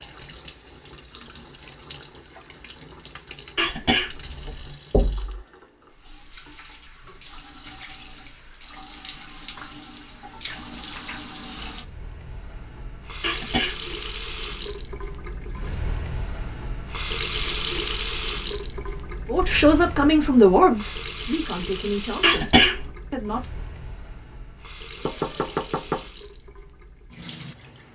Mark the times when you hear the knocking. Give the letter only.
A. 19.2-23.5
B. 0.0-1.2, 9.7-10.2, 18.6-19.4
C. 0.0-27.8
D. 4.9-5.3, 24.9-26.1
D.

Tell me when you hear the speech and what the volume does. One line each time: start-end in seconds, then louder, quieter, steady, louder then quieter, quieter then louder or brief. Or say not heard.
19.2-23.5 quieter.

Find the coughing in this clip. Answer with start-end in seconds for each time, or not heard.
3.5-4.8, 13.2-13.8, 22.2-22.9.